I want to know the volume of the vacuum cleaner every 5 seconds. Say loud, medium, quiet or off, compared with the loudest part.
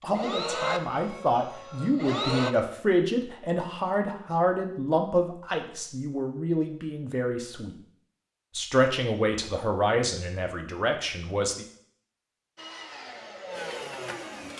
loud, off, medium.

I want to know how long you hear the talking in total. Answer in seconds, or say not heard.
11 s.